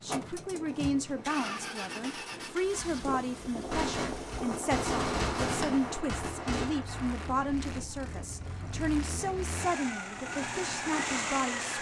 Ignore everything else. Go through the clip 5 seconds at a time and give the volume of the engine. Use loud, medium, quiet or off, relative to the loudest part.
medium, medium, loud.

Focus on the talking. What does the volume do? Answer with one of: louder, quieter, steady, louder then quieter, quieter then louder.
steady.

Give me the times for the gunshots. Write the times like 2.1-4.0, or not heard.
3.7-6.8.